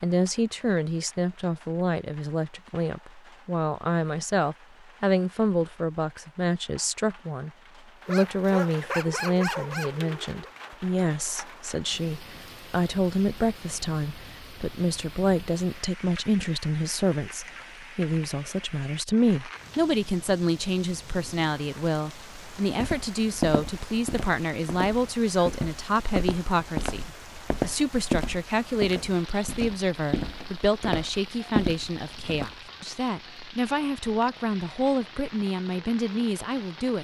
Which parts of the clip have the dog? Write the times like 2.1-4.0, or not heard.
8.1-10.5.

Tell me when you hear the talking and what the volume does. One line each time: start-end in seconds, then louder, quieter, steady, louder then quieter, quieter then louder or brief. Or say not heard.
0.0-36.9 steady.